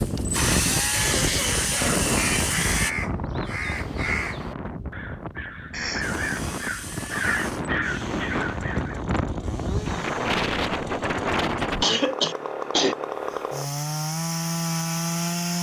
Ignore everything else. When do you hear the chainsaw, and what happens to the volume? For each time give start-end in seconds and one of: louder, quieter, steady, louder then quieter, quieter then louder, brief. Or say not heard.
0.0-3.0 brief
6.0-15.5 louder.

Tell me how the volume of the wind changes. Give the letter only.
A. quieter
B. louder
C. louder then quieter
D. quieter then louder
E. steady
D.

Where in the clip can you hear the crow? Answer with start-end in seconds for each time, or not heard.
2.1-9.0.